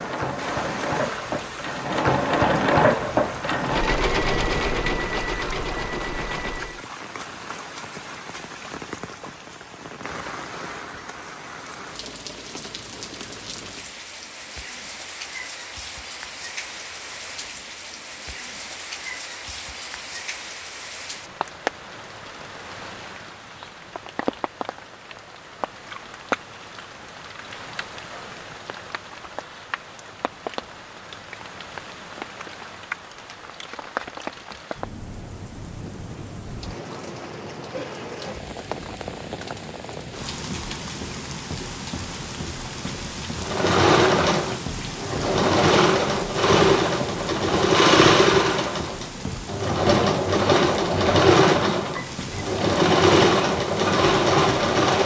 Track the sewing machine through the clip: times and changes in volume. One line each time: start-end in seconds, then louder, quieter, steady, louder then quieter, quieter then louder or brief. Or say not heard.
0.0-6.8 louder then quieter
43.4-55.0 steady.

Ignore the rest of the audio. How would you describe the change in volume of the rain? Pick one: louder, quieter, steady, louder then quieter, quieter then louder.
steady.